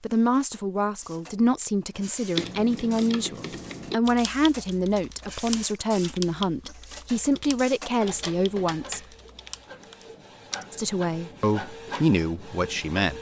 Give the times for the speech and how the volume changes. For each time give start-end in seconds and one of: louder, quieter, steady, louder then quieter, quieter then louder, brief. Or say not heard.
0.0-9.0 steady
10.7-13.1 brief.